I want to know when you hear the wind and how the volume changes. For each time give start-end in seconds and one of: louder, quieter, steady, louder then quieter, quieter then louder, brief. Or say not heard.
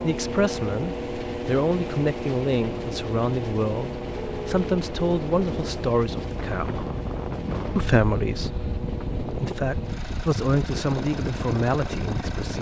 0.0-12.5 louder.